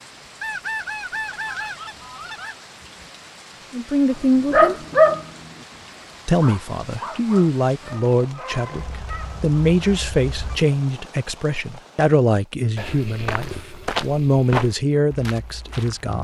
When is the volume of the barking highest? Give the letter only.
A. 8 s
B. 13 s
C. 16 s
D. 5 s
D.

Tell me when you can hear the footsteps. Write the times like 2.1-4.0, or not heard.
12.8-16.1.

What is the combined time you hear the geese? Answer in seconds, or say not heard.
4 s.